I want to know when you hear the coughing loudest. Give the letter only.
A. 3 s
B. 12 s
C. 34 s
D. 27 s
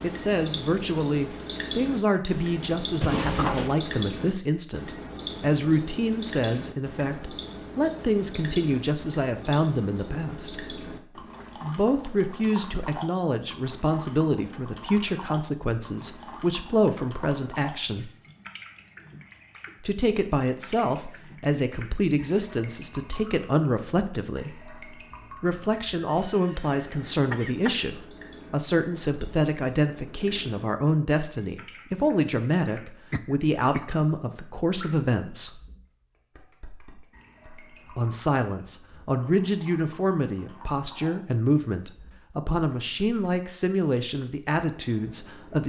A.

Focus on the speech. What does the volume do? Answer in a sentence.
The volume of the speech stays about the same.